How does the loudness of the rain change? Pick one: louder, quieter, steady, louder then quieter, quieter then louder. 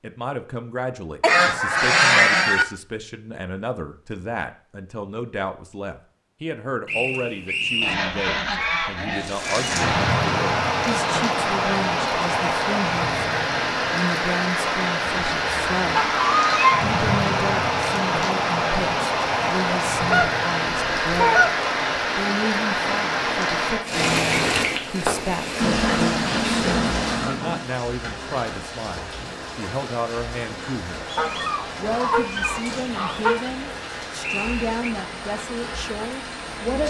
quieter.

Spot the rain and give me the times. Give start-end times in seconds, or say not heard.
9.2-36.8.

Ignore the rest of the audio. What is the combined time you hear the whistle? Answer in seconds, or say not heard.
2 s.